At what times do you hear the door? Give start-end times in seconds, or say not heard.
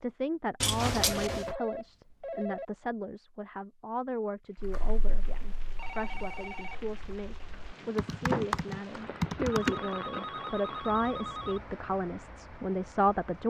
0.6-1.6.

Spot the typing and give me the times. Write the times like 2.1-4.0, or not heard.
4.5-9.8.